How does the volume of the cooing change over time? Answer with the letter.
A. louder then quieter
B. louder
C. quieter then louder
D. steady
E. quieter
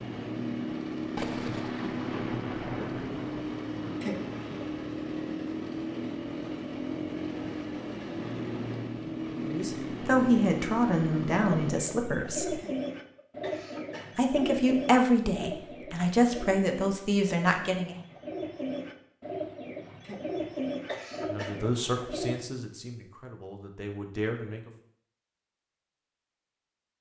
C.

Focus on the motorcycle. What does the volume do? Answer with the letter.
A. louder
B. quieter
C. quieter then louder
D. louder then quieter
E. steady
E.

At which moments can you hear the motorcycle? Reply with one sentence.
You can hear the motorcycle from 0.0 to 11.8 s.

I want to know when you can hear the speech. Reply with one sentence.
The speech can be heard from 9.3 to 12.6 s, from 14.2 to 17.9 s and from 21.2 to 24.7 s.